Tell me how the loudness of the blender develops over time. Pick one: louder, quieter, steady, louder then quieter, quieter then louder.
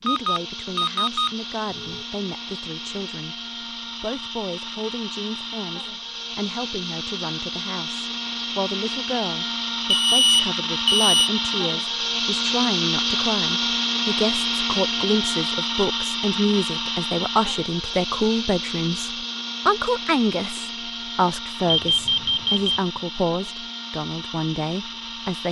louder then quieter.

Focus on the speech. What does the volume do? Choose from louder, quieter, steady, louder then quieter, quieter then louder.
louder.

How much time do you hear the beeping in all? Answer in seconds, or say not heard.
5 s.